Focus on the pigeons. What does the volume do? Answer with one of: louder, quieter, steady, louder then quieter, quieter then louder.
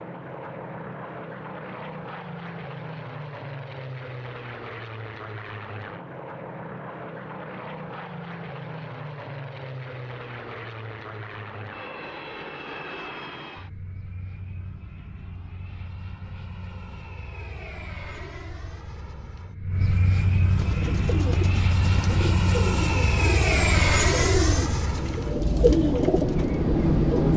louder.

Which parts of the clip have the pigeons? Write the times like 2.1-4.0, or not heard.
20.4-27.3.